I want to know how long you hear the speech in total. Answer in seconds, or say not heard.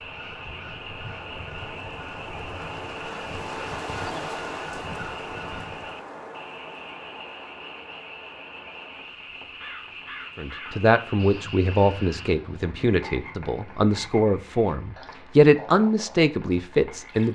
7 s.